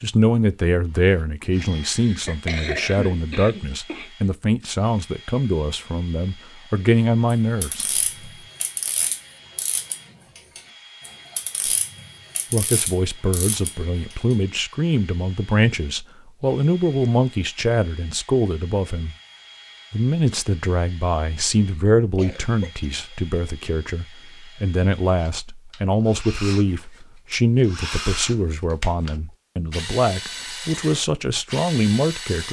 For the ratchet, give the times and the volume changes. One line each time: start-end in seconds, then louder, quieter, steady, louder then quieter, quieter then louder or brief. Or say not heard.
7.3-13.7 quieter then louder.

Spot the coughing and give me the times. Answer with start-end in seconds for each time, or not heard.
1.8-4.1, 22.0-23.2.